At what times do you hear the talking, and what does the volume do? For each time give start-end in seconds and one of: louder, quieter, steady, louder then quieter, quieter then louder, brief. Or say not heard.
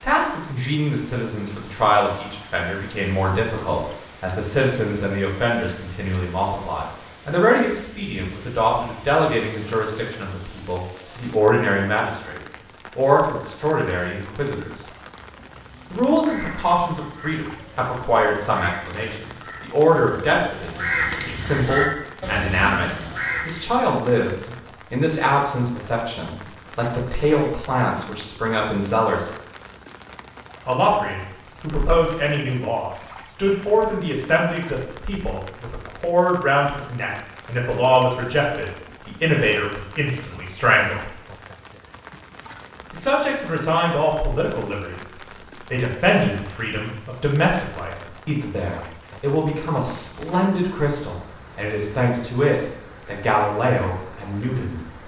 0.0-14.8 steady
15.9-29.3 steady
30.6-41.1 steady
42.9-55.0 steady.